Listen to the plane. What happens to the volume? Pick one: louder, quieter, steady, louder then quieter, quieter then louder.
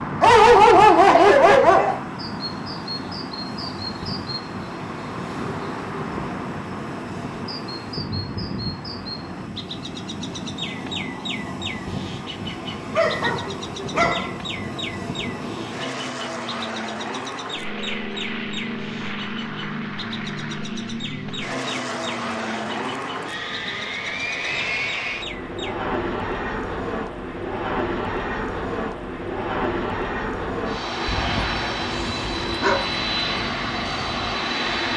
louder.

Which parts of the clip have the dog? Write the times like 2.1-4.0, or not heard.
0.2-1.9, 12.9-14.3, 31.1-32.8.